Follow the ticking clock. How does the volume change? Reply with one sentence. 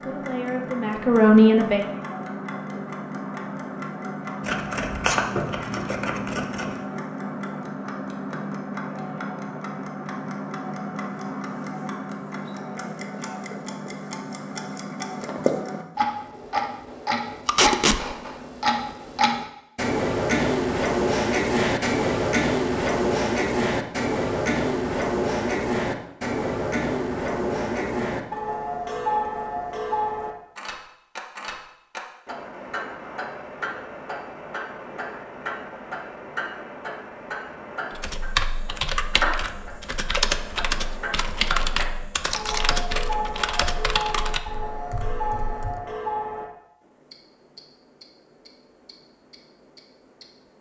The volume of the ticking clock goes up, then down.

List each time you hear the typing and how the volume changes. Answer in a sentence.
You can hear the typing from 37.9 to 45.9 s, getting quieter.